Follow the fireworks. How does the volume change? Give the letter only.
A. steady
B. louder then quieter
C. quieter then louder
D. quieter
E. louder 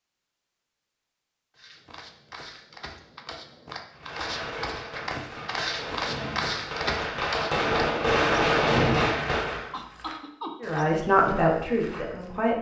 E.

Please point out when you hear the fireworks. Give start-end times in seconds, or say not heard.
3.9-9.7.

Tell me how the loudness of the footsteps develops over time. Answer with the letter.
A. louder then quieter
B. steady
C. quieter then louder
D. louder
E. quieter
A.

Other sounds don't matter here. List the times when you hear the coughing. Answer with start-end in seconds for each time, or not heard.
9.7-10.6.